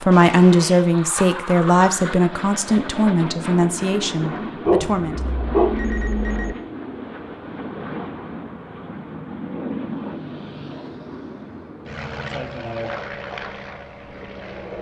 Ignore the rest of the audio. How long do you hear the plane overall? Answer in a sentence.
You can hear the plane for 15 seconds altogether.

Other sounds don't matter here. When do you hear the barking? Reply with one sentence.
The barking can be heard from 4.7 to 6.5 s.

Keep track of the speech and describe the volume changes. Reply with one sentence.
The loudness of the speech goes down.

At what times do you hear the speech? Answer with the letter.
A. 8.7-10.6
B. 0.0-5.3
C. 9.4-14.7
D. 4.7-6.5
B.